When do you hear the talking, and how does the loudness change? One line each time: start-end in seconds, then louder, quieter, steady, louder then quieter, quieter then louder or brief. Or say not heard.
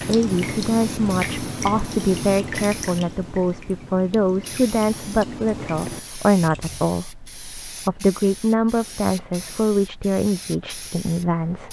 0.1-11.6 steady.